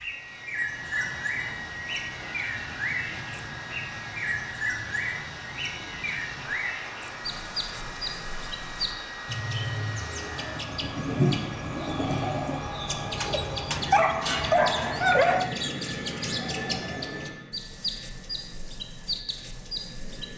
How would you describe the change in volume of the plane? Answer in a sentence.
The volume of the plane stays about the same.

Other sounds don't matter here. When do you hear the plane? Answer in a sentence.
You can hear the plane from 0.0 to 20.3 s.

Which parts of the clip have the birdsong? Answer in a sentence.
The birdsong can be heard from 0.0 to 20.3 s.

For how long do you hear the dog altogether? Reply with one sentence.
The dog can be heard for 2 seconds in total.